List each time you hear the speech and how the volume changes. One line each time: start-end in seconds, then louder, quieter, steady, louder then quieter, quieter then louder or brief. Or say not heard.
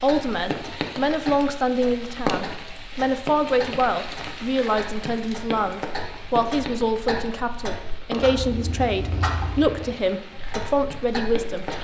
0.0-11.7 steady.